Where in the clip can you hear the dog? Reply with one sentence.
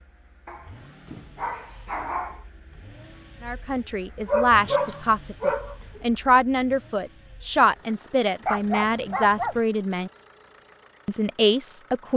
You can hear the dog from 0.5 to 2.5 s, from 4.2 to 6.0 s and from 8.4 to 9.6 s.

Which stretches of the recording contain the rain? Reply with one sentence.
The rain can't be heard in this clip.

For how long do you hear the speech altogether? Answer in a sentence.
The speech can be heard for 8 seconds in total.